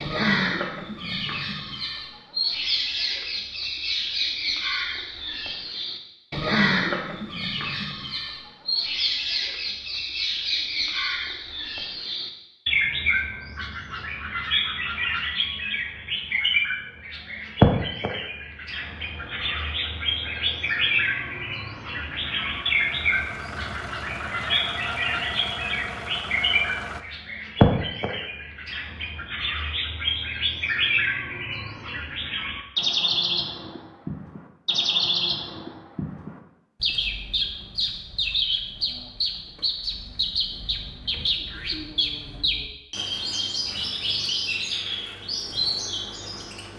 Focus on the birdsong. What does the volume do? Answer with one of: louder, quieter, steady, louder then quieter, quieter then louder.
steady.